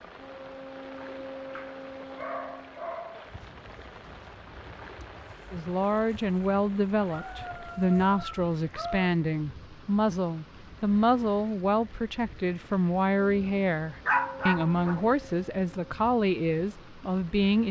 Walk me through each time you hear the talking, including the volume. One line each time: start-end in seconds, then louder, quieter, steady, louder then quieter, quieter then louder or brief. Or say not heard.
5.5-17.6 steady.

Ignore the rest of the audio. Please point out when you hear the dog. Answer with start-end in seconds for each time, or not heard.
1.5-3.3, 7.1-9.1, 14.1-15.0.